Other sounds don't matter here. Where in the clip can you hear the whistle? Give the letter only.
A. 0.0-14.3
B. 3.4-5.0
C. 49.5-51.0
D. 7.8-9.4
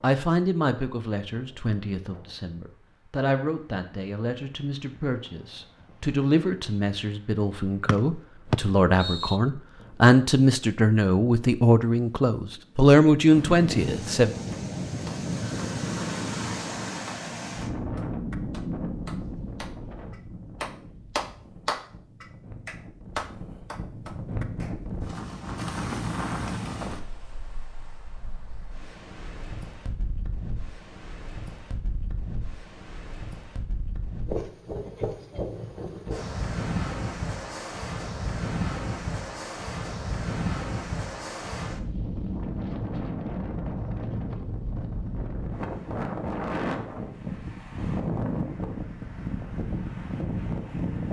D.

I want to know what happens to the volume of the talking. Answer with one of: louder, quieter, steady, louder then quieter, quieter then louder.
louder.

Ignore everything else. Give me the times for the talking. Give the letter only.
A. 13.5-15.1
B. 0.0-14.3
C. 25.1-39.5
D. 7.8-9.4
B.